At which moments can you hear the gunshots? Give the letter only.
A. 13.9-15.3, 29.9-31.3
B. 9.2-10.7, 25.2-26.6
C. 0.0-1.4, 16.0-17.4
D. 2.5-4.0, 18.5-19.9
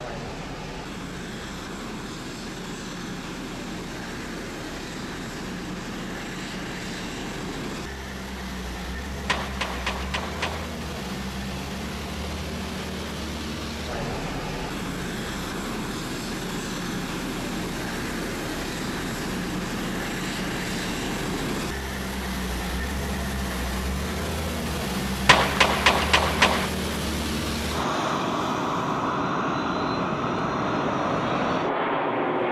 B.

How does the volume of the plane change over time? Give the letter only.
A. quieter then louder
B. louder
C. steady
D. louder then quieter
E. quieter
B.